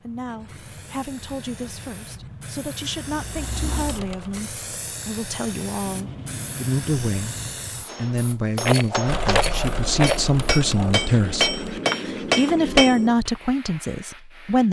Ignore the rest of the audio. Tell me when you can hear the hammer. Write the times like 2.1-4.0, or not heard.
7.8-13.2.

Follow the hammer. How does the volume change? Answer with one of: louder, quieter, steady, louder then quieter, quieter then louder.
louder.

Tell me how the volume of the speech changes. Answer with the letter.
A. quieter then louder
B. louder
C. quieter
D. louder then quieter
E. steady
B.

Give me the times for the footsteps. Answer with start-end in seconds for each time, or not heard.
not heard.